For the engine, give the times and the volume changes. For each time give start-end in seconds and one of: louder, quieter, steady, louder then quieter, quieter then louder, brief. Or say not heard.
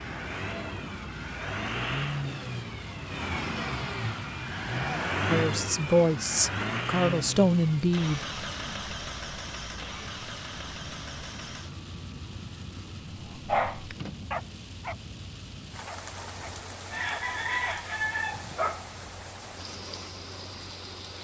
0.0-21.1 quieter.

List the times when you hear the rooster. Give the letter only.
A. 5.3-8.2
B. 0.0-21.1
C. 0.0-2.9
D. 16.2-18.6
D.